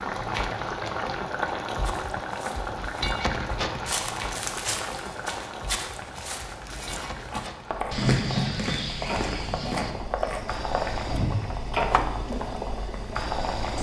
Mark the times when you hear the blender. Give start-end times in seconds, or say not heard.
not heard.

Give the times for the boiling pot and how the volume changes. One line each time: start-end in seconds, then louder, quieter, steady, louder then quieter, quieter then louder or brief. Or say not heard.
0.0-13.7 quieter then louder.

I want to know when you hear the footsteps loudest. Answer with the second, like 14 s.
8 s.